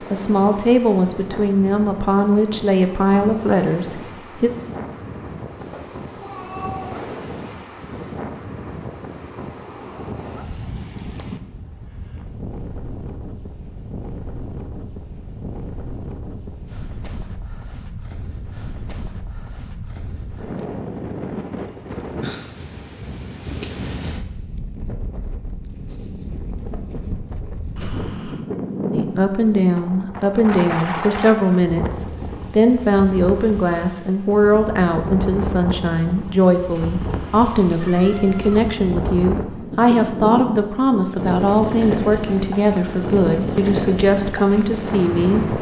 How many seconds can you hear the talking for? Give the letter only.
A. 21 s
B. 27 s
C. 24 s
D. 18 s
A.